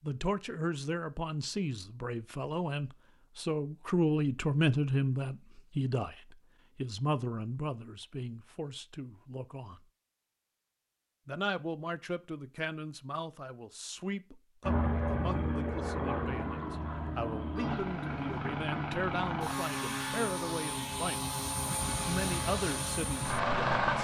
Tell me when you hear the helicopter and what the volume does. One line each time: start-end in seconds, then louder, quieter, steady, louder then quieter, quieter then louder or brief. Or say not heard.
14.6-23.9 steady.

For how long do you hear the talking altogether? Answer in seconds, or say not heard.
22 s.